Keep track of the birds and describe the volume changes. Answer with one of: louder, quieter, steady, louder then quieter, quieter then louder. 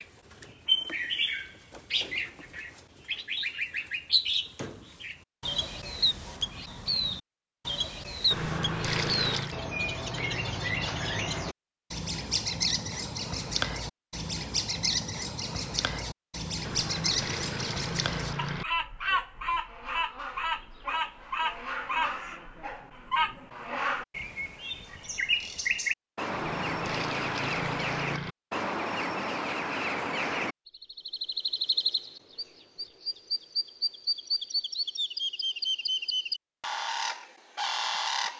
steady.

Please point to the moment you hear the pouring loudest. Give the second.
9 s.